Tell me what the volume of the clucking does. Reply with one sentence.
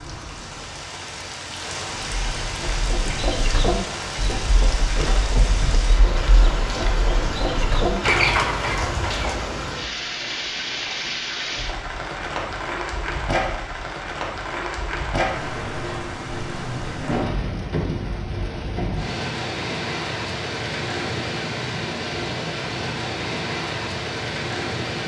The volume of the clucking goes down, then up.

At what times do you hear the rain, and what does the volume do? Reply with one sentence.
You can hear the rain from 0.0 to 25.0 s, at a steady volume.